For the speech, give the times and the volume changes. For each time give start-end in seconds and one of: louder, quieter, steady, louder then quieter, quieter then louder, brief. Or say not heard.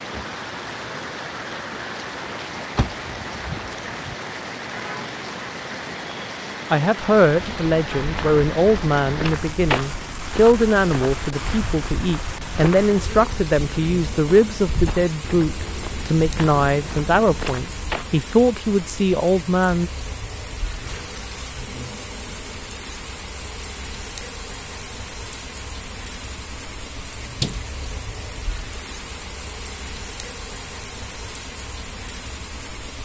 6.7-19.9 steady.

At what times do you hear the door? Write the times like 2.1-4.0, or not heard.
2.8-4.2, 27.2-27.6.